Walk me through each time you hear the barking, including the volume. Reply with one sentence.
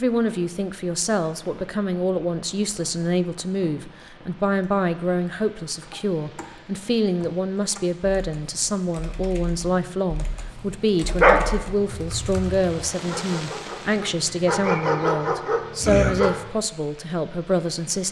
The barking can be heard from 11.2 to 16.4 s, getting louder.